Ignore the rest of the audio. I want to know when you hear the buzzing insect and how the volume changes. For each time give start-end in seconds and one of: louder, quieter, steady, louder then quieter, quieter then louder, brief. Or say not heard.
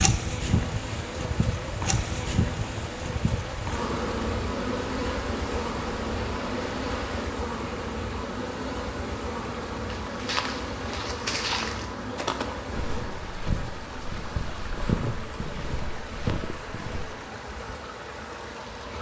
0.0-18.9 quieter.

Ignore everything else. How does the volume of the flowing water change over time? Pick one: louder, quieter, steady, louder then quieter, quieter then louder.
steady.